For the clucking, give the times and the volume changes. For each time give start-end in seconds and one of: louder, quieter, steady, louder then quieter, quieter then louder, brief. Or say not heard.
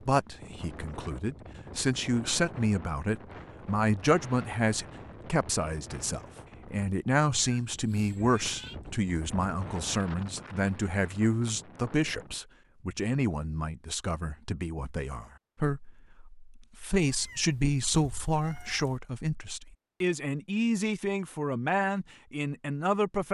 not heard.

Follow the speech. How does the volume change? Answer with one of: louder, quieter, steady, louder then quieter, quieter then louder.
steady.